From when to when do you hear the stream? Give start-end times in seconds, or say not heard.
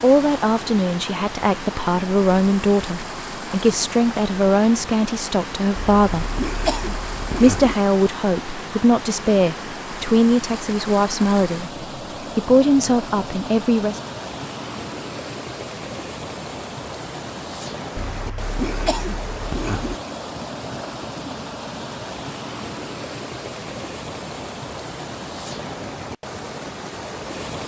0.0-27.6.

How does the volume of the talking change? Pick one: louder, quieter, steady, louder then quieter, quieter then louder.
steady.